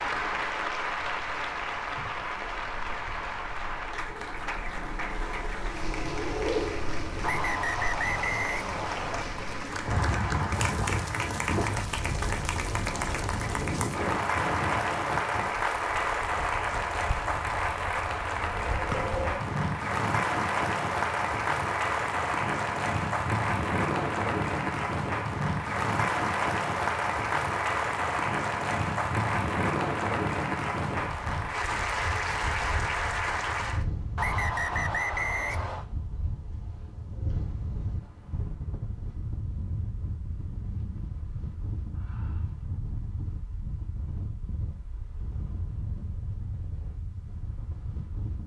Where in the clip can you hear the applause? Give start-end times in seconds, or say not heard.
0.0-33.9.